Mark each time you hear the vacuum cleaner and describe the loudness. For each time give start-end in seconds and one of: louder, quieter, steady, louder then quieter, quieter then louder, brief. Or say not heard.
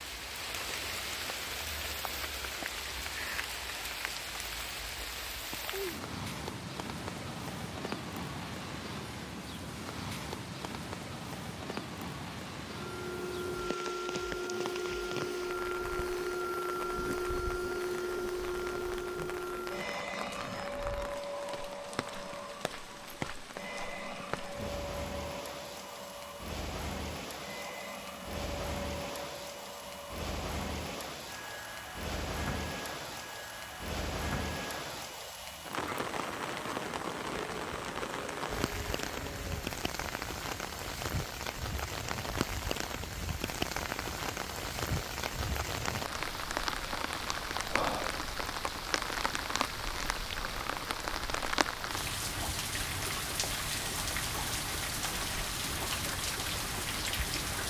12.7-39.8 quieter.